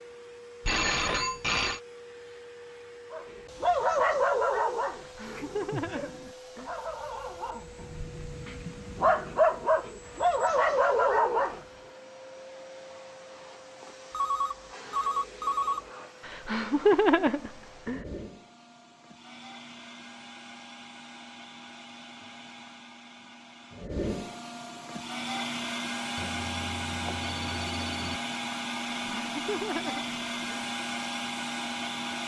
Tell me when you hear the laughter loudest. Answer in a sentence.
The loudest moment of the laughter is at 17 seconds.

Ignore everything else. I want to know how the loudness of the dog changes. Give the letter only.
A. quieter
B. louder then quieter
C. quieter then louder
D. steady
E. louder
C.